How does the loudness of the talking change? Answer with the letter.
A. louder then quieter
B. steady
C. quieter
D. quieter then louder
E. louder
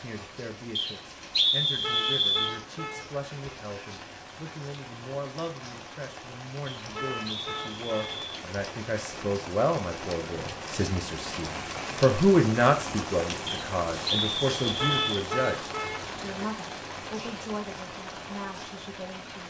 A.